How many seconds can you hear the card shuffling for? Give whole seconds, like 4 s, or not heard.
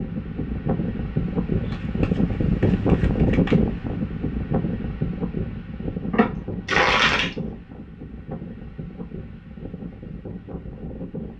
3 s.